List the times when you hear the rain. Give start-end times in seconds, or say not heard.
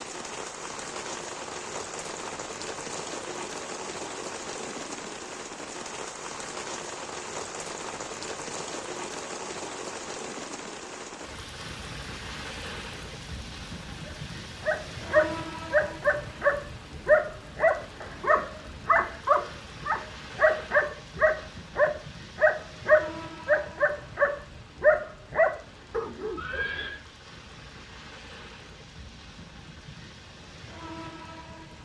0.0-31.8.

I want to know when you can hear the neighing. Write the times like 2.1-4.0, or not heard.
26.4-27.0.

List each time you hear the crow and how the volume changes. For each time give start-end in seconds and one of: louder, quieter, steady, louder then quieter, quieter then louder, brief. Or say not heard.
not heard.